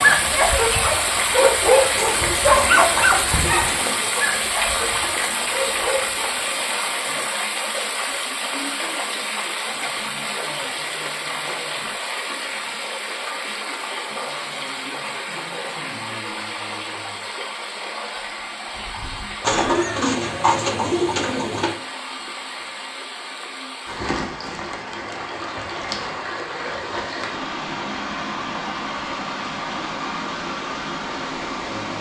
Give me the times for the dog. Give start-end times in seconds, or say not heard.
0.0-6.3.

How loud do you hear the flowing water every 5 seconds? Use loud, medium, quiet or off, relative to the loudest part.
loud, loud, medium, medium, medium, medium, medium.